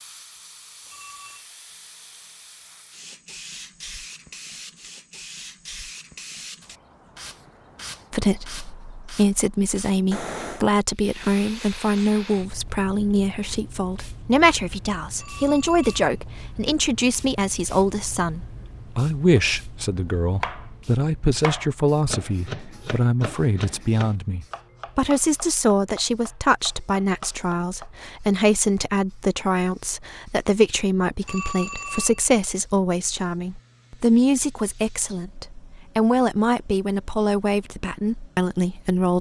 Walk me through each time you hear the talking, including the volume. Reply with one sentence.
You can hear the talking from 8.1 to 39.1 s, at a steady volume.